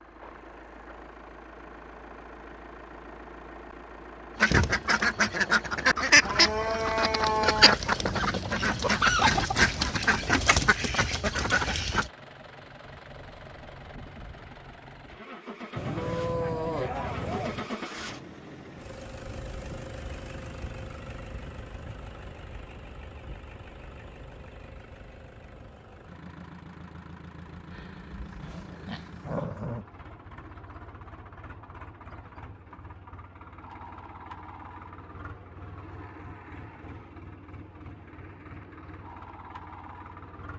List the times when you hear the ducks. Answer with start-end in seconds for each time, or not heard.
4.4-12.1.